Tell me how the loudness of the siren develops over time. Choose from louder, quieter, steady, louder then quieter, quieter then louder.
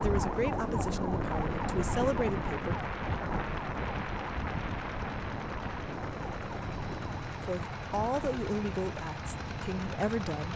quieter.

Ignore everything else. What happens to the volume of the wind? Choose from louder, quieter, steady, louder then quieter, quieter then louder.
quieter.